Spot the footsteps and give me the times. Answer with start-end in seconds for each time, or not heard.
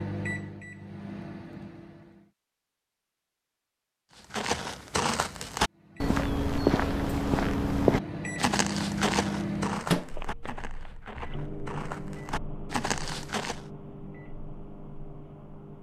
4.2-13.6.